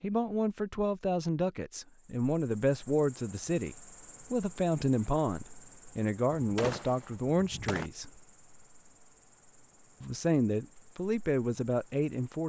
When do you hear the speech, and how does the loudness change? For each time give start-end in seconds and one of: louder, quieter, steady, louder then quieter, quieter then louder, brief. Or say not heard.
0.0-8.1 steady
10.0-12.4 brief.